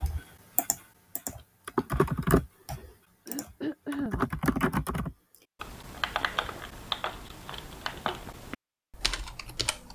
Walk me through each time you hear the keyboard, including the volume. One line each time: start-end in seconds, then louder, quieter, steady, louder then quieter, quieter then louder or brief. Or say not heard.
0.0-9.9 quieter.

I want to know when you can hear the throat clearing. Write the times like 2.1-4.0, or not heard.
3.2-4.2.